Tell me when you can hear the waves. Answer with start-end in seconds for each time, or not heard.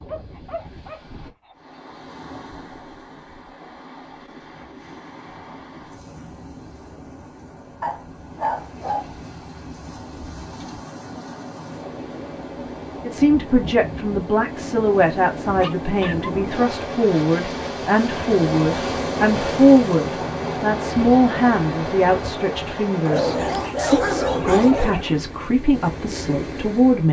0.0-27.0.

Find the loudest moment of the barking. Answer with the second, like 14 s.
24 s.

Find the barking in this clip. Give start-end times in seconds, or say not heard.
0.1-1.8, 7.8-9.1, 14.6-16.3, 23.1-25.1.